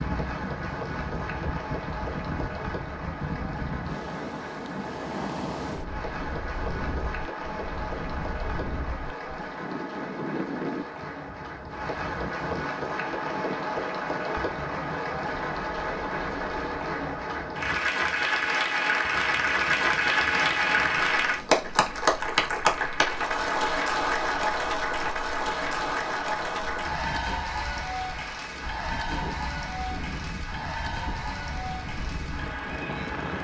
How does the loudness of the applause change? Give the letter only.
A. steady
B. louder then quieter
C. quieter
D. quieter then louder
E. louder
B.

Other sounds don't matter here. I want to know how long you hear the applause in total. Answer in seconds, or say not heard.
33 s.